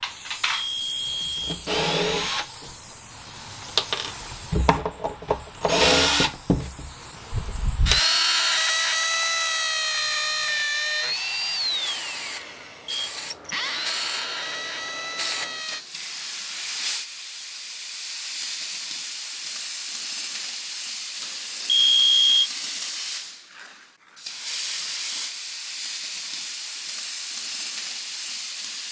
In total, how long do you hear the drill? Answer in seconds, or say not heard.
16 s.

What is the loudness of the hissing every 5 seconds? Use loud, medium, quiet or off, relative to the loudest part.
medium, quiet, medium, loud, loud, loud.